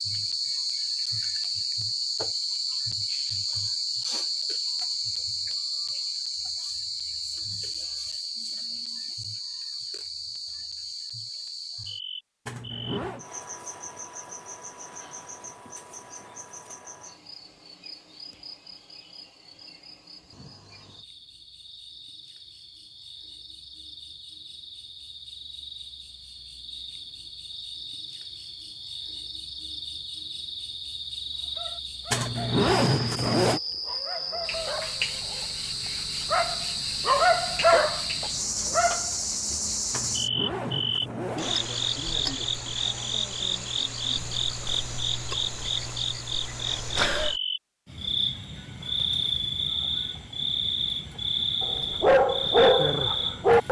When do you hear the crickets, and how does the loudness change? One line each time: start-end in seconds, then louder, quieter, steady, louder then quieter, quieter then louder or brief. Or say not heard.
0.0-53.6 quieter then louder.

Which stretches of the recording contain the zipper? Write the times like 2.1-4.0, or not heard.
12.4-13.2, 32.1-33.6, 39.9-41.6.